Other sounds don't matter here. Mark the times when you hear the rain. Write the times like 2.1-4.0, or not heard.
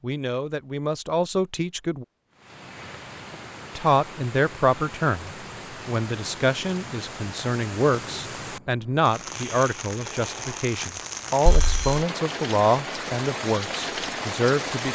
2.3-14.9.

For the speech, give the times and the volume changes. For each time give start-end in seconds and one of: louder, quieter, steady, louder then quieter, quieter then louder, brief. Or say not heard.
0.0-2.0 brief
3.8-14.9 steady.